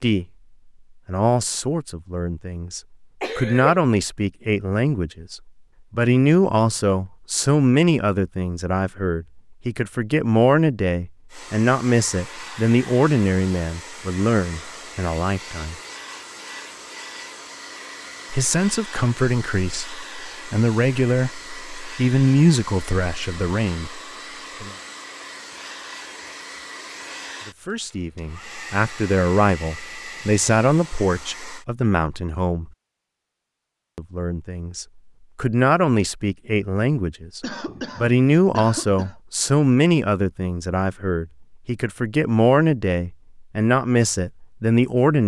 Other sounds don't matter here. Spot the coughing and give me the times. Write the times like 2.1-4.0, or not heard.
3.2-3.8, 37.4-39.1.